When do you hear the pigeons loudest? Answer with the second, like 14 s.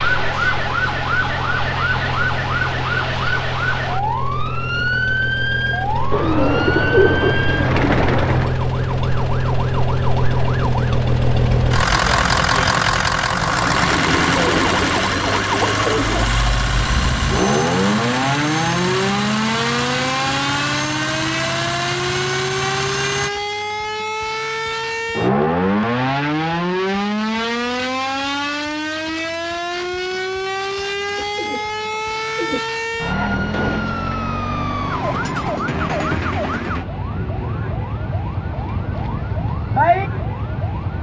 7 s.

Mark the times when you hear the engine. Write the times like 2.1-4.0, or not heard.
0.0-23.3.